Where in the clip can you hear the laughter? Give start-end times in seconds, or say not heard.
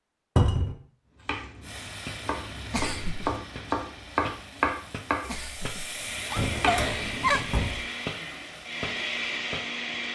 2.7-3.4, 5.2-7.5.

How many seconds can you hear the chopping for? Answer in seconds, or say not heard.
6 s.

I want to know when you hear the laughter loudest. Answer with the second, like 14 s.
7 s.